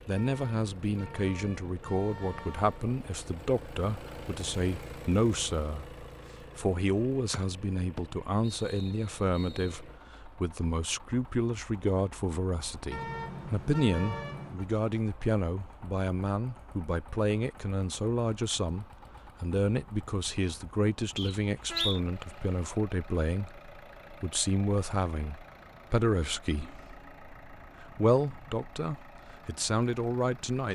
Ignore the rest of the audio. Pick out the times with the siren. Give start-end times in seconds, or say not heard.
not heard.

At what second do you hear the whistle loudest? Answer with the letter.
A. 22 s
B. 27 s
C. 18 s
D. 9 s
A.